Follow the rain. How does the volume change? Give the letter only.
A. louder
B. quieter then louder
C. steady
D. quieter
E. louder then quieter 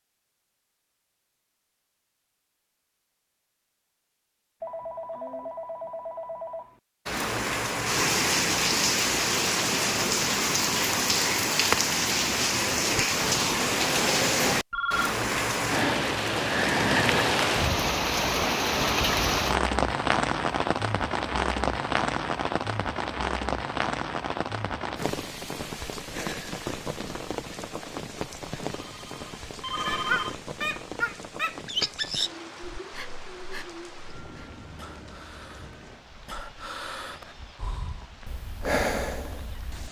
D.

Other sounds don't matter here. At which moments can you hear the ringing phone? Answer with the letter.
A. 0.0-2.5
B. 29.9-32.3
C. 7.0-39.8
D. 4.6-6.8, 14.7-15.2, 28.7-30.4
D.